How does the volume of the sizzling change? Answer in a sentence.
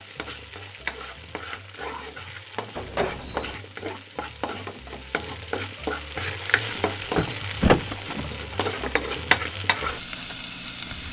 The volume of the sizzling goes up.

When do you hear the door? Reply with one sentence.
The door can be heard from 2.8 to 3.6 s and from 6.7 to 8.3 s.